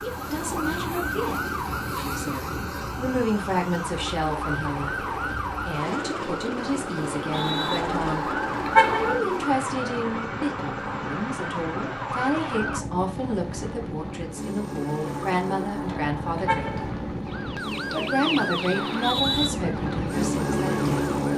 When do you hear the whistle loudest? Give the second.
19 s.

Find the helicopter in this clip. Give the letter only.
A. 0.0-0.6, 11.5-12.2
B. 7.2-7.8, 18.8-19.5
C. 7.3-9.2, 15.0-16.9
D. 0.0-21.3
D.